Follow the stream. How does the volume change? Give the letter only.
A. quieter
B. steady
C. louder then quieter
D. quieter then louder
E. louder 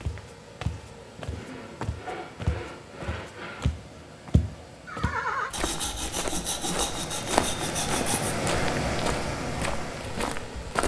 E.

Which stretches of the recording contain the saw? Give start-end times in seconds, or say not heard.
1.1-3.6, 5.5-8.3.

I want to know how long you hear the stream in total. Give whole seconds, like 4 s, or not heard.
11 s.